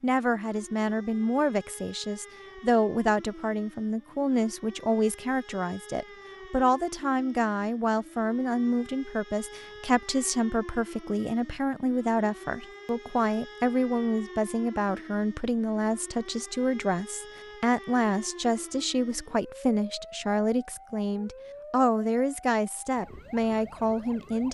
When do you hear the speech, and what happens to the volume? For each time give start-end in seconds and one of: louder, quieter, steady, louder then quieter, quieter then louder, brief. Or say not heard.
0.0-24.5 steady.